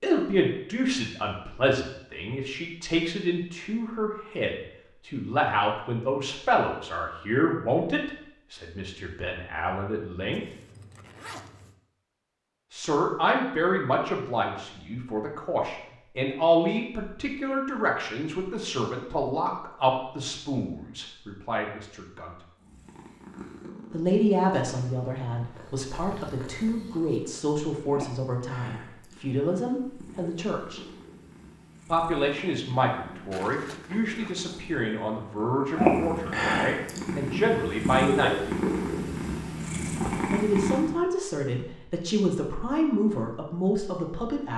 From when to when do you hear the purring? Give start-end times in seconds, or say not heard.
22.6-41.0.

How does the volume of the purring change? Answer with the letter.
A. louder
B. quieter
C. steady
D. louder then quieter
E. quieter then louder
A.